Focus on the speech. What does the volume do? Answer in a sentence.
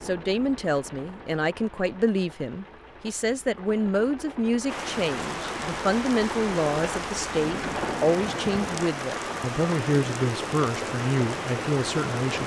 The volume of the speech stays about the same.